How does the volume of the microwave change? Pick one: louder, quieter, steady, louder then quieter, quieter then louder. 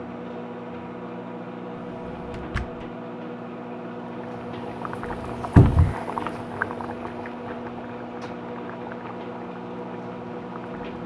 steady.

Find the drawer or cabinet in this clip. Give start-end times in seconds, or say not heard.
1.8-2.9, 5.5-6.0.